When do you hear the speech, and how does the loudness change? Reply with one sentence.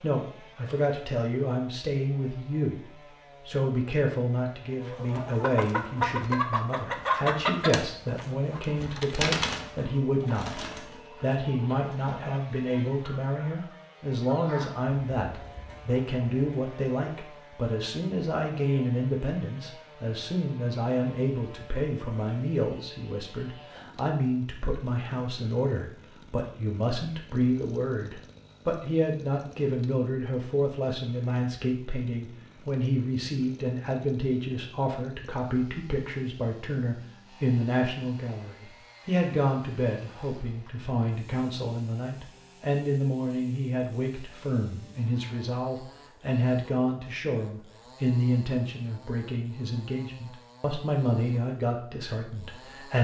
The speech can be heard from 0.0 to 10.6 s, at a steady volume; and from 11.2 to 52.9 s, at a steady volume.